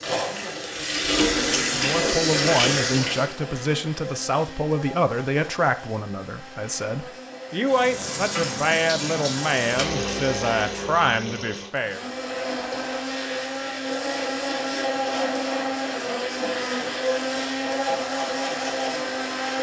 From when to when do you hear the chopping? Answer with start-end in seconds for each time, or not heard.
not heard.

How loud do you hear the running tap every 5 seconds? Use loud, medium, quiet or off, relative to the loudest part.
loud, medium, medium, off.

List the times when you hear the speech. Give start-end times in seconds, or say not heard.
1.6-12.1.